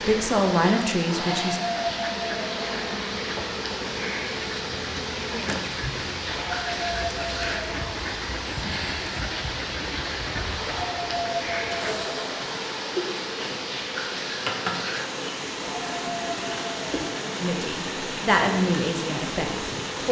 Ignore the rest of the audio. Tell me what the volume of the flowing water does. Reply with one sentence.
The loudness of the flowing water stays about the same.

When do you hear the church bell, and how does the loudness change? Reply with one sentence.
You can't hear the church bell here.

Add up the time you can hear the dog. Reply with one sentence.
The dog can be heard for 7 seconds in total.